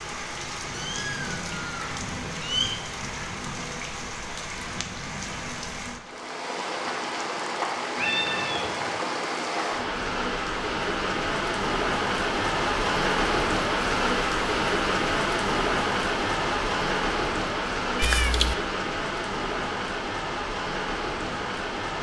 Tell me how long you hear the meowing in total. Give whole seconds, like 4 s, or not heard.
4 s.